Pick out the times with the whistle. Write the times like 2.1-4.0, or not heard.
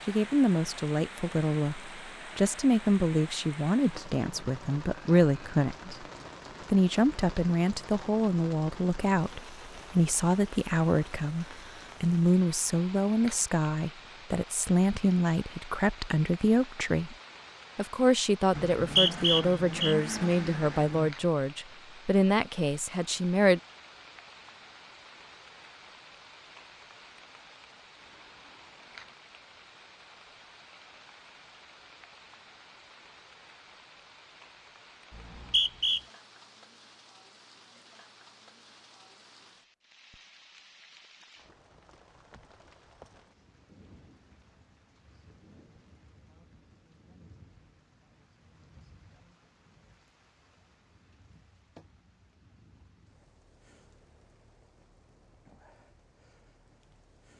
18.8-19.9, 35.1-36.0.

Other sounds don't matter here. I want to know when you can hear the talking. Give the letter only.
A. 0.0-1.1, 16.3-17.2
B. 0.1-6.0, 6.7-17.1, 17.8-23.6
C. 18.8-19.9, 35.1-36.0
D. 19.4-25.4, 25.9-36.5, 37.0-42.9
B.